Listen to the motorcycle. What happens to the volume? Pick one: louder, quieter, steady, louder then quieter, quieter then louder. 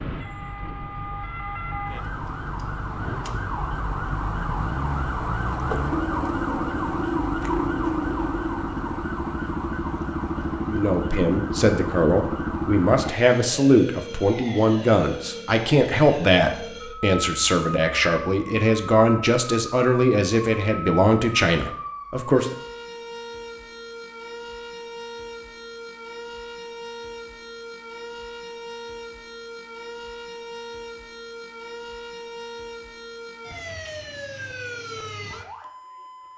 louder.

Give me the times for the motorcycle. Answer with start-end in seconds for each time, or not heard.
0.1-13.2.